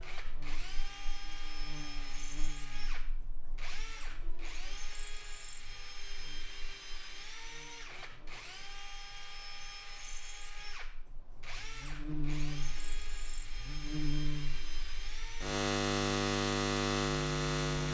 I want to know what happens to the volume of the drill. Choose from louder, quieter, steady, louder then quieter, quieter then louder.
steady.